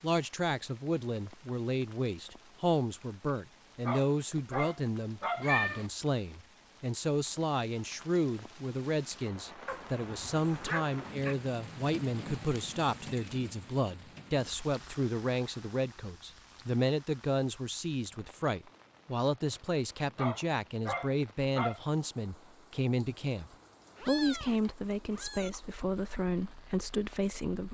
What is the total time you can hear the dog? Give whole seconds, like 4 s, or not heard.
5 s.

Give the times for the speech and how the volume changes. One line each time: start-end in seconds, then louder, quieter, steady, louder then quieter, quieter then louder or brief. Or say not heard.
0.0-27.6 steady.